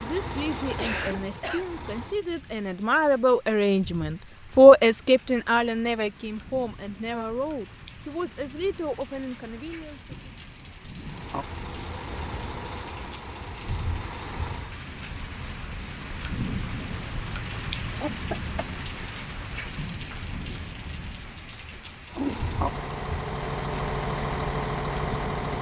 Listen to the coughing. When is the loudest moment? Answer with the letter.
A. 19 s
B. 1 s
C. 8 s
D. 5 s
B.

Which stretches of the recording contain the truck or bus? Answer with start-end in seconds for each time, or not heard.
0.0-2.2, 10.9-14.8, 22.1-25.5.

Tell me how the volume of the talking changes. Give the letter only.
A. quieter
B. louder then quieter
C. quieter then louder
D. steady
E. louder
B.